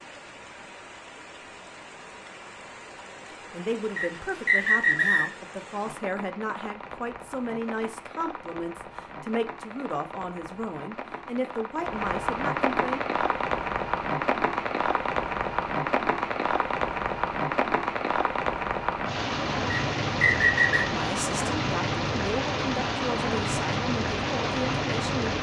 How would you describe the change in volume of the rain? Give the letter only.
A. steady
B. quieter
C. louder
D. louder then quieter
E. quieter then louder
C.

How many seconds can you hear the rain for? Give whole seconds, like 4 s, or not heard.
25 s.